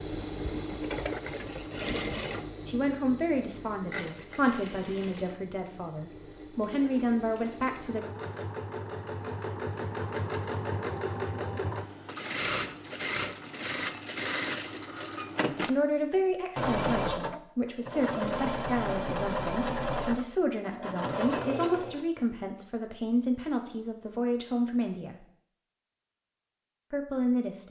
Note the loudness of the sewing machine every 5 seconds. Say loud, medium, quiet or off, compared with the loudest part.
medium, medium, loud, loud, loud, off.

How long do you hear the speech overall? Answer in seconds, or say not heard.
16 s.